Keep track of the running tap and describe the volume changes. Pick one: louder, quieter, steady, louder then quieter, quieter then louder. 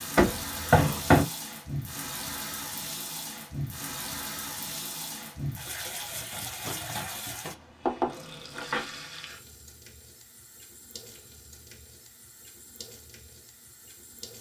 quieter.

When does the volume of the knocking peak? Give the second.
1 s.